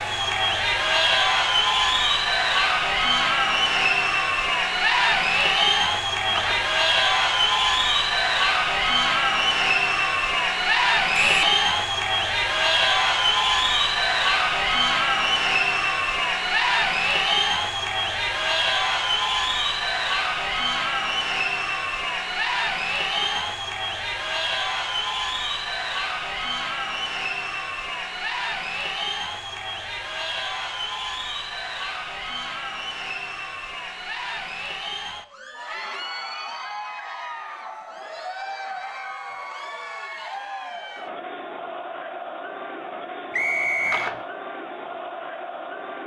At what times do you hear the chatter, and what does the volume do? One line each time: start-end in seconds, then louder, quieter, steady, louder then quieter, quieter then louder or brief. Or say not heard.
0.0-46.0 quieter.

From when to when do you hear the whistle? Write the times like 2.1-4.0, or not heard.
11.1-11.6, 43.3-44.1.